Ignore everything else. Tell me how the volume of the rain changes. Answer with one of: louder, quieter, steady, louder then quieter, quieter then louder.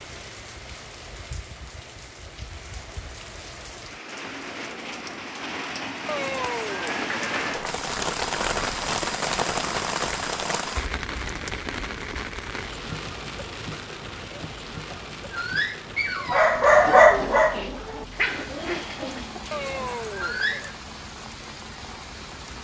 louder then quieter.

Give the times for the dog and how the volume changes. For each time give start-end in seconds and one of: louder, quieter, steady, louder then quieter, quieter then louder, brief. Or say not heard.
14.5-20.6 louder then quieter.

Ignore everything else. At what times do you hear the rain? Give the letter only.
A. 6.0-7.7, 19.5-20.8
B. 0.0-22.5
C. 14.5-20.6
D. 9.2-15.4
B.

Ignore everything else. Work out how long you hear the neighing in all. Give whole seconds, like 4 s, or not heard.
3 s.